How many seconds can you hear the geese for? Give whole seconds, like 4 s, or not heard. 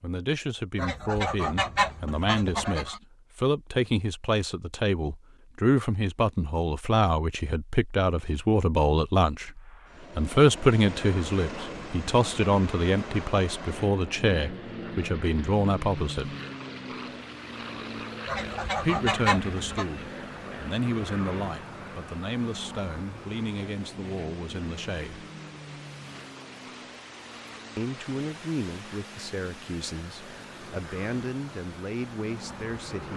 4 s.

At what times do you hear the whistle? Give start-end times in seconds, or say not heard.
not heard.